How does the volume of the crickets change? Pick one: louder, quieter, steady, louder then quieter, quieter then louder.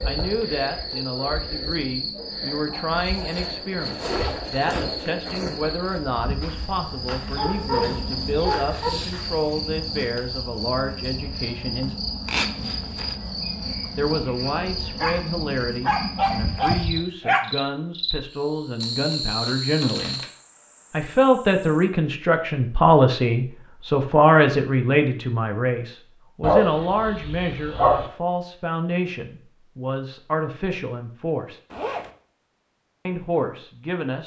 steady.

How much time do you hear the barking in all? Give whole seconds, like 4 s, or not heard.
6 s.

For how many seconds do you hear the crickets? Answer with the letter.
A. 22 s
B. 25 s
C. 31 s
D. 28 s
A.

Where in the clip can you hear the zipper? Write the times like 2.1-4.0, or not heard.
3.7-4.6, 12.2-13.2, 31.7-32.1.